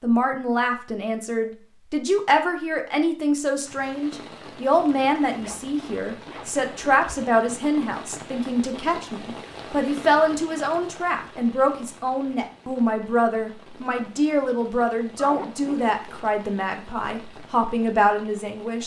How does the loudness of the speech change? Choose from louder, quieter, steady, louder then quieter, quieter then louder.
steady.